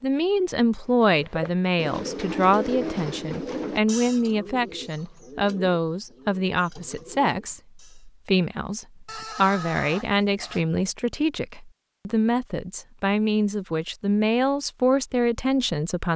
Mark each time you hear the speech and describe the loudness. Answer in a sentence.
The speech can be heard from 0.0 to 16.1 s, at a steady volume.